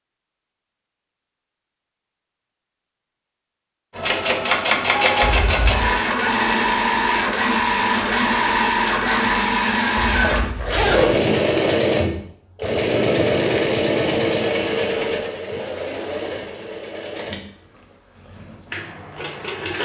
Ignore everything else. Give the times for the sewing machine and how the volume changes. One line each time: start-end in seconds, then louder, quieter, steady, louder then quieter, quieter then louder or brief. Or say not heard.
4.0-19.8 quieter.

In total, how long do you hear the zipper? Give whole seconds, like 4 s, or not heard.
2 s.